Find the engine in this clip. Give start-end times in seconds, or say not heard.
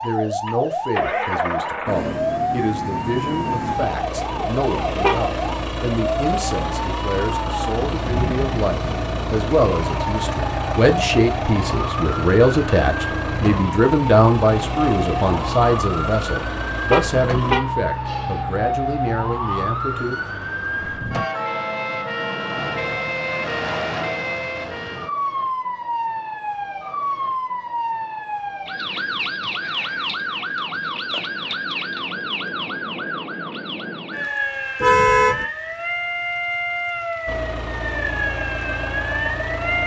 0.0-17.6, 37.2-39.8.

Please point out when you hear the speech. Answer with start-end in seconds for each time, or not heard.
0.0-20.1.